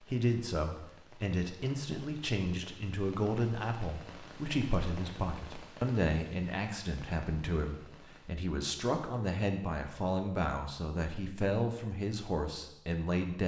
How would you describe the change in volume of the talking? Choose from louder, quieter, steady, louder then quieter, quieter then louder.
steady.